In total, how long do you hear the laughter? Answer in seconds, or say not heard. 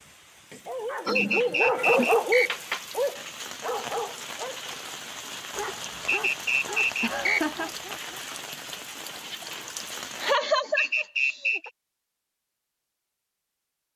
3 s.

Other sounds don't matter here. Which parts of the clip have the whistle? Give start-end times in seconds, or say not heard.
1.1-2.5, 6.0-7.5, 10.8-11.7.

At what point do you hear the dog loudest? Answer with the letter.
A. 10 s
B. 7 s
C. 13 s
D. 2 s
D.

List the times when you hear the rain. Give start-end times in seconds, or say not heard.
0.0-10.4.